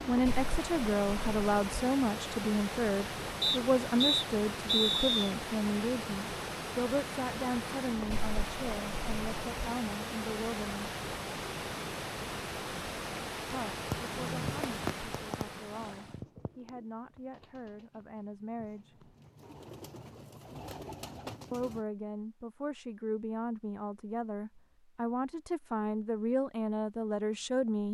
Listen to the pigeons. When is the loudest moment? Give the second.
15 s.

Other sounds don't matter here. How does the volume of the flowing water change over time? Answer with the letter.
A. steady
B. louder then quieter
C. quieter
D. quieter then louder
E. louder
A.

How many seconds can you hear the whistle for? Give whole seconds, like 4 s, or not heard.
2 s.